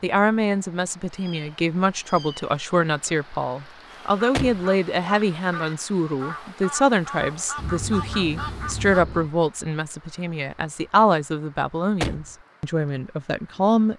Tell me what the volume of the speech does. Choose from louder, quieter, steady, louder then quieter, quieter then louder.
steady.